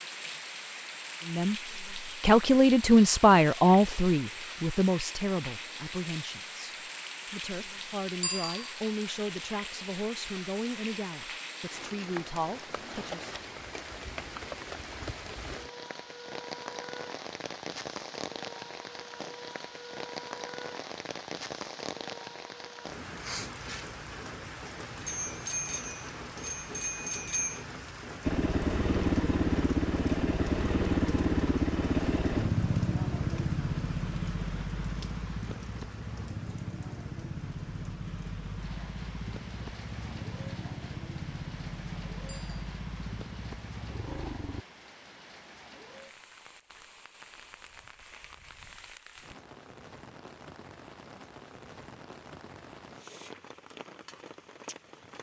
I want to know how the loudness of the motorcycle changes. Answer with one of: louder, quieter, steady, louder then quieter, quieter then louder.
quieter.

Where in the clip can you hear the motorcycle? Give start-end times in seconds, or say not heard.
28.2-44.6.